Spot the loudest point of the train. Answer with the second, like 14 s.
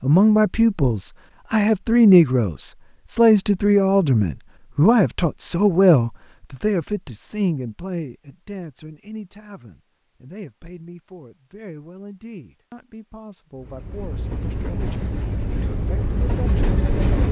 17 s.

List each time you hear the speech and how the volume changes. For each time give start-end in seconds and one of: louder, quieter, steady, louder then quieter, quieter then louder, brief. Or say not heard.
0.0-17.1 quieter.